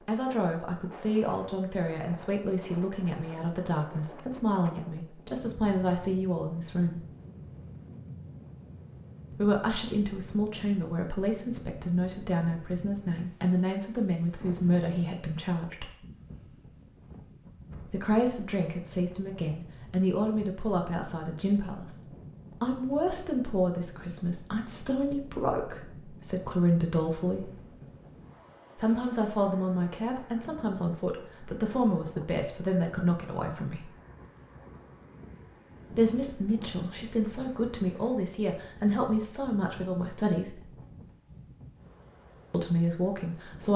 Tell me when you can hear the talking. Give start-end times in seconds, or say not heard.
0.1-7.0, 9.3-15.9, 17.9-27.5, 28.8-33.9, 35.9-40.8, 42.5-43.7.